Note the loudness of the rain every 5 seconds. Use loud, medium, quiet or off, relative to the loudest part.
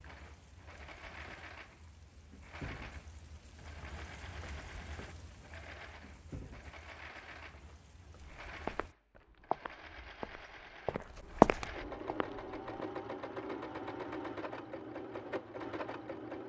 loud, loud, off, off.